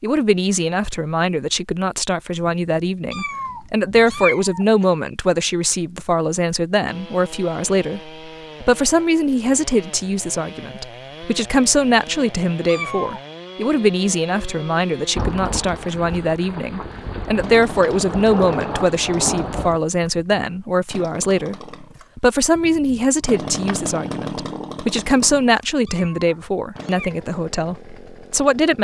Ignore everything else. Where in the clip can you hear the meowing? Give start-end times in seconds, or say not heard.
3.1-4.8, 12.7-13.2, 25.9-27.2.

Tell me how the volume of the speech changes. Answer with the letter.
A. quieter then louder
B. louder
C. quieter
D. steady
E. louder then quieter
D.